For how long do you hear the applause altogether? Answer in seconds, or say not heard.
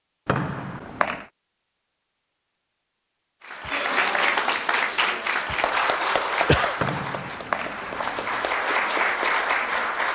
7 s.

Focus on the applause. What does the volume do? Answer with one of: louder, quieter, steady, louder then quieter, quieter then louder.
quieter then louder.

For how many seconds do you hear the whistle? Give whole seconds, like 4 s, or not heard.
3 s.